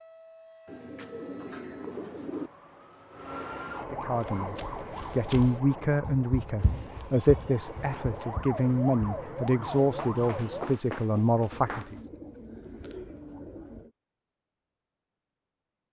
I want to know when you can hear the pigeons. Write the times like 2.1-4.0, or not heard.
0.7-2.5, 6.5-8.3, 11.5-13.9.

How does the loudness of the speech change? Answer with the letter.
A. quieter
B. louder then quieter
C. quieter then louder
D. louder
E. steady
E.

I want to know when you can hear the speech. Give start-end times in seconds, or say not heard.
3.9-11.9.